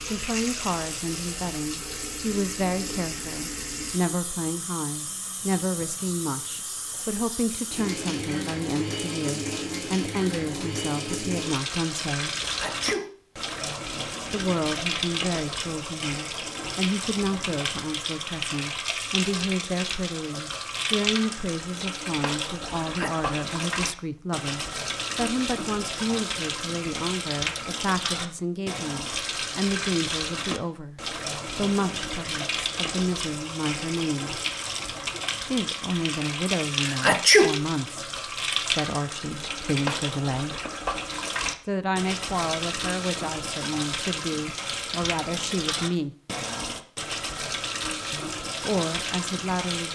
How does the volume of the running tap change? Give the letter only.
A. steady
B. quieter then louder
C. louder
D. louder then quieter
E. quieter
A.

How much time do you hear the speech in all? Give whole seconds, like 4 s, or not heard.
44 s.